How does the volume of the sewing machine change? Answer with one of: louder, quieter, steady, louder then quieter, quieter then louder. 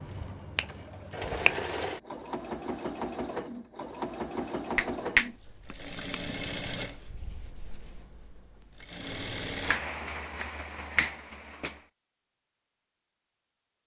quieter.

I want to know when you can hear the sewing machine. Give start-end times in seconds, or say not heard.
0.0-9.8.